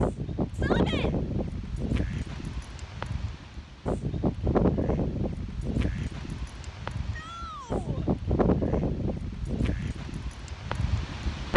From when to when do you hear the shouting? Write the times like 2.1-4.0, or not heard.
0.5-1.1, 7.1-8.1.